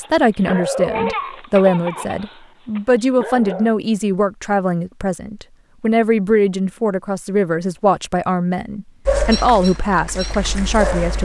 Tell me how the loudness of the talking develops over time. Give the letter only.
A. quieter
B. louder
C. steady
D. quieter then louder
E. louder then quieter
C.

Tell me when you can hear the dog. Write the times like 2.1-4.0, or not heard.
0.0-3.7, 9.1-11.1.